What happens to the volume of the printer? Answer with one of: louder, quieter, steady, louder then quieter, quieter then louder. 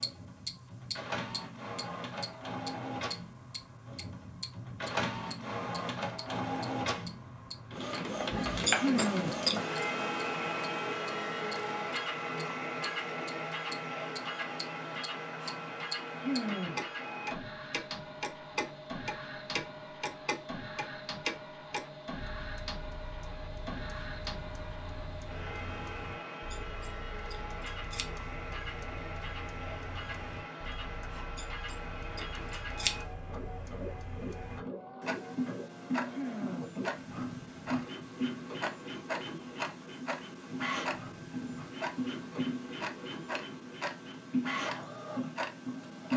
quieter.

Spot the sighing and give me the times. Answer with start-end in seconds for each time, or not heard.
8.7-9.4, 16.1-16.9, 36.0-36.8.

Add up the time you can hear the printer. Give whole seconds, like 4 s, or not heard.
46 s.